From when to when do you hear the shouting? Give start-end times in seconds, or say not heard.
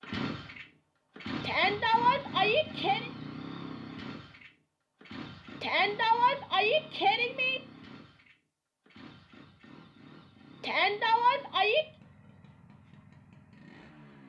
1.4-3.1, 5.6-7.6, 10.6-11.8.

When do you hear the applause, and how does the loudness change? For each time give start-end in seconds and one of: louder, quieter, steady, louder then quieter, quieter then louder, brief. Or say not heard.
not heard.